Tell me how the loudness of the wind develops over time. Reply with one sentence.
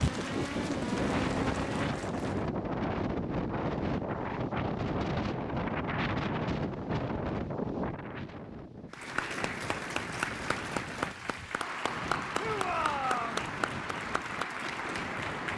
The loudness of the wind goes down.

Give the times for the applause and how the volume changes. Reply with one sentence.
The applause can be heard briefly from 0.0 to 2.5 s; and from 8.9 to 15.5 s, at a steady volume.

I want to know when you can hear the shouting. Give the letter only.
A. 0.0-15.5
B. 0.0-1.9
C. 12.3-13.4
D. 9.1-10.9
C.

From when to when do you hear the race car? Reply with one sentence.
You can hear the race car from 0.0 to 1.9 s.